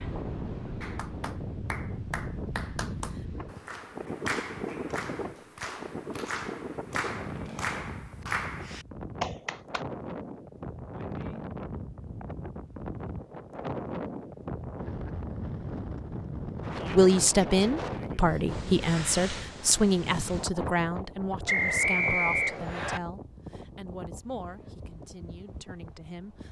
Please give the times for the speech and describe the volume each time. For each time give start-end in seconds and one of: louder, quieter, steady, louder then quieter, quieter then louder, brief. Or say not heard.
16.9-26.4 quieter.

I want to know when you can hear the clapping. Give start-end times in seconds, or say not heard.
0.8-9.8.